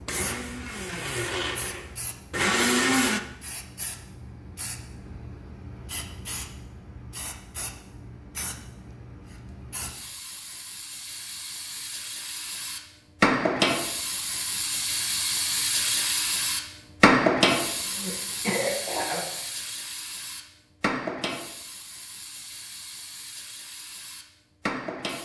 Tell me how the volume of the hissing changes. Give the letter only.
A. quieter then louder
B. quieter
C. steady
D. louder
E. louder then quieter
E.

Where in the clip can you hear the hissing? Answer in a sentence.
You can hear the hissing from 0.0 to 25.2 s.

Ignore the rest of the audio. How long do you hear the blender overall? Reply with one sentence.
You can hear the blender for 3 seconds altogether.